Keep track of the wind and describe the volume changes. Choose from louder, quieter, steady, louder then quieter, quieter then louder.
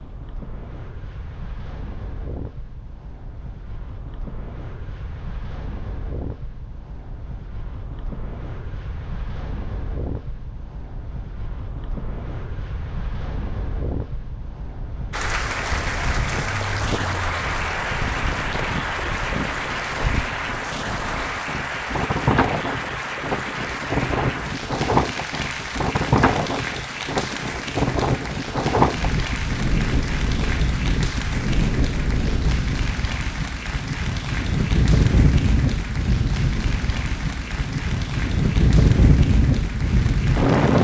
louder.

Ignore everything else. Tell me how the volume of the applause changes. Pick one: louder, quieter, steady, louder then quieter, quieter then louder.
quieter.